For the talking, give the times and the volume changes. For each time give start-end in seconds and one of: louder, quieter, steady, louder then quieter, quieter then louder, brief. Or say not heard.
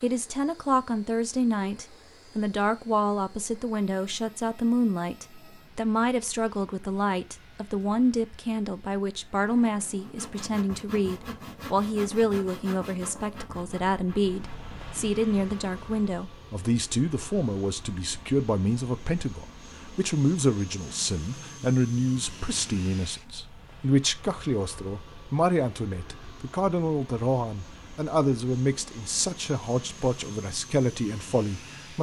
0.0-31.9 steady.